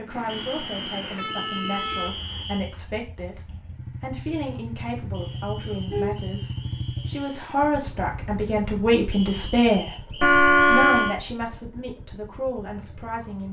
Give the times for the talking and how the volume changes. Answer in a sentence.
The talking can be heard from 0.0 to 13.4 s, getting louder then quieter.